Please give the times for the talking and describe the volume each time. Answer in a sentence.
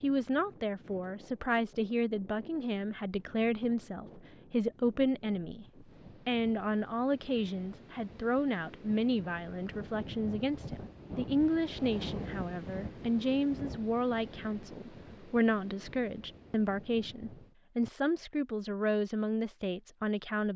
The talking can be heard from 0.0 to 20.5 s, at a steady volume.